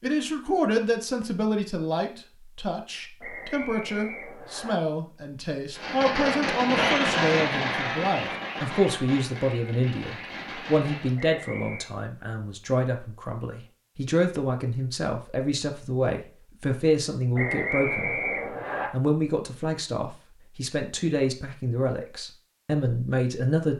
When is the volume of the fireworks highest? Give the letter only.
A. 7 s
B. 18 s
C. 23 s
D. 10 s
A.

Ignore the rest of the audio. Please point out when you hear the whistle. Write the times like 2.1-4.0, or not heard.
3.2-4.8, 11.2-11.8, 17.4-18.9.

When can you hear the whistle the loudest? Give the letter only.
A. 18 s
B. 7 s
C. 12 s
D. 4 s
A.